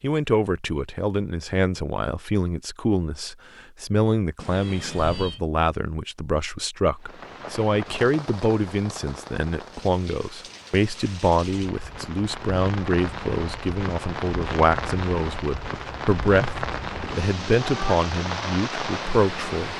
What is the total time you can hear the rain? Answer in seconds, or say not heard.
13 s.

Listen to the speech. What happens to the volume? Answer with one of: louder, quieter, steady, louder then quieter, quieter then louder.
steady.